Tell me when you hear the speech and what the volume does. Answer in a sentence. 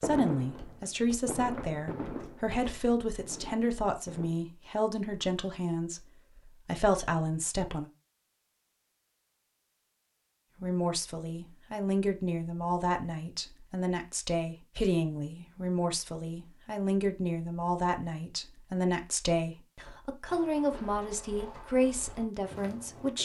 You can hear the speech from 0.0 to 7.9 s, at a steady volume; and from 10.6 to 23.2 s, at a steady volume.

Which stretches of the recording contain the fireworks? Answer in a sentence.
The fireworks can be heard from 0.0 to 4.4 s.